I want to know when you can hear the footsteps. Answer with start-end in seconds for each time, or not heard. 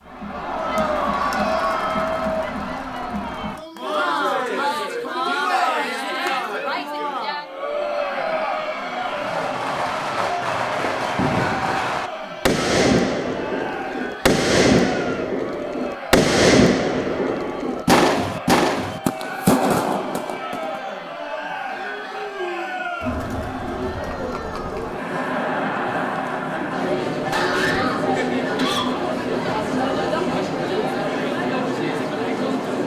not heard.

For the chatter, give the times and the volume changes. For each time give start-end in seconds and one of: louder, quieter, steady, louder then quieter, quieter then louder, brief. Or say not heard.
0.0-32.8 quieter then louder.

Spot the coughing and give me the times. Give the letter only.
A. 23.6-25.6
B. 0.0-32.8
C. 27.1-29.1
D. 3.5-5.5
C.